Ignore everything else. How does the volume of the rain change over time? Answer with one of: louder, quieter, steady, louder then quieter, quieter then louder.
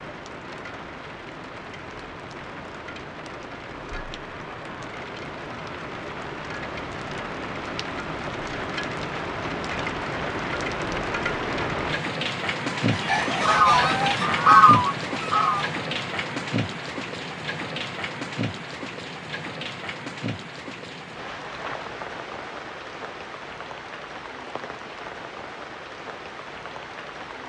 louder then quieter.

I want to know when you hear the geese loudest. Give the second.
15 s.